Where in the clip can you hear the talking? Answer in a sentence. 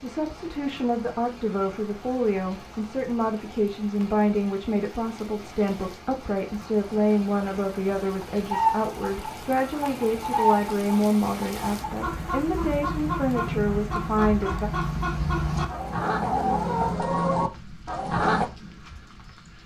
The talking can be heard from 0.0 to 14.7 s.